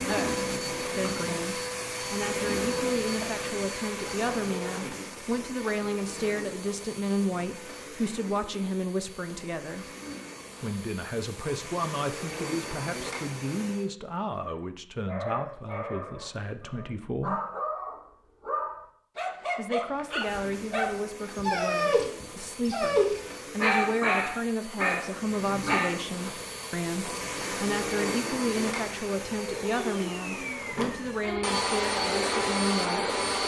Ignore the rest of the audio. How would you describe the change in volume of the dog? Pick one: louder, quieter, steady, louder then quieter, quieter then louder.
louder.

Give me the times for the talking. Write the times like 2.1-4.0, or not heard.
0.0-9.9, 10.6-17.4, 19.6-33.1.